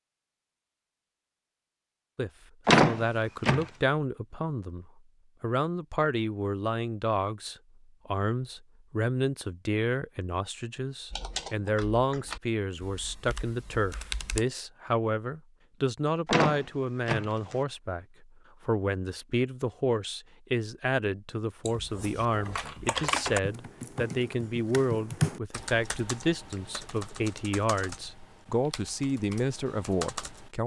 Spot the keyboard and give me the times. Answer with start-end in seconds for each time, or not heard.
11.1-14.4, 21.6-30.5.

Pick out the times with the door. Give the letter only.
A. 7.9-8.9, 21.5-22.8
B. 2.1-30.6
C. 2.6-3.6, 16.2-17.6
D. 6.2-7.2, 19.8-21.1
C.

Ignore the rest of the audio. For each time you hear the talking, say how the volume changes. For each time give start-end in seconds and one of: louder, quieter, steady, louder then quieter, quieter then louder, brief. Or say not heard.
2.1-30.6 steady.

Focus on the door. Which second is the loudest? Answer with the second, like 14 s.
3 s.